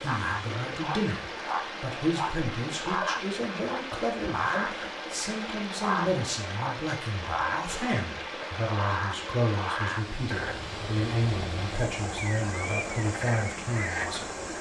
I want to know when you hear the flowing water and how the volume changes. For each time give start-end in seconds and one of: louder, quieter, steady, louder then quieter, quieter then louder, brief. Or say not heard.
0.0-14.5 steady.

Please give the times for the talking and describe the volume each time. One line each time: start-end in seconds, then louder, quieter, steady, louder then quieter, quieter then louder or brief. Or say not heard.
0.0-14.3 steady.